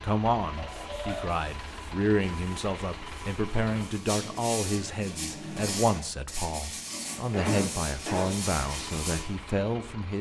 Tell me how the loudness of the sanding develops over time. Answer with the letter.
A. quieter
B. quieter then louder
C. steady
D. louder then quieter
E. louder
E.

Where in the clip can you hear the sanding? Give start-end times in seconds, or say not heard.
0.6-9.2.